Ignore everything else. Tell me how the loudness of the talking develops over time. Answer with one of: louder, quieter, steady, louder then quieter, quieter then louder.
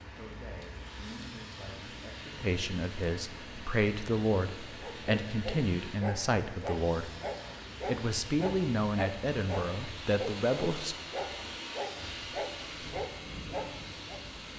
louder.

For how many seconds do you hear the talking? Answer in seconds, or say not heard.
10 s.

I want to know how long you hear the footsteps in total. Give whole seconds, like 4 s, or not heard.
not heard.